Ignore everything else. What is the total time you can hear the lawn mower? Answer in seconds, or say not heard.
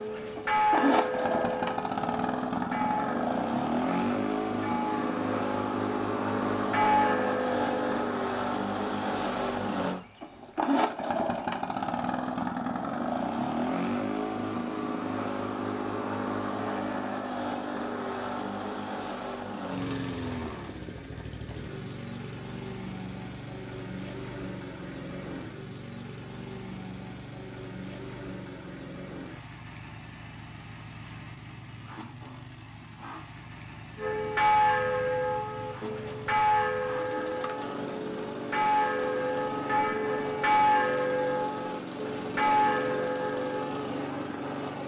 45 s.